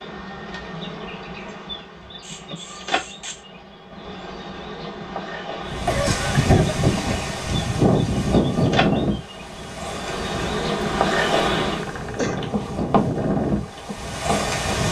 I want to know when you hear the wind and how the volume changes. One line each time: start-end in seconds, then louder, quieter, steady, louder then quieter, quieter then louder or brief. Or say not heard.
5.7-14.8 quieter then louder.